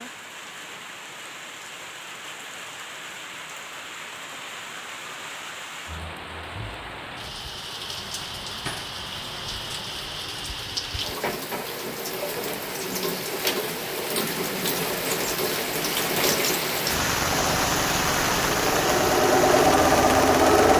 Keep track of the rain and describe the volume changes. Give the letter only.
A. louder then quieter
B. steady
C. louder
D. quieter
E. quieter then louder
C.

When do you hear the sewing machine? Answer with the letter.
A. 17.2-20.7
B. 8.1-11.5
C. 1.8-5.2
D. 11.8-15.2
A.